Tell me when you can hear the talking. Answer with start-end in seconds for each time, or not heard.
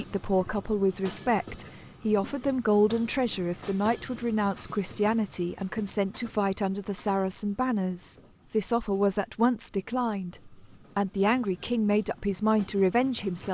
0.0-13.5.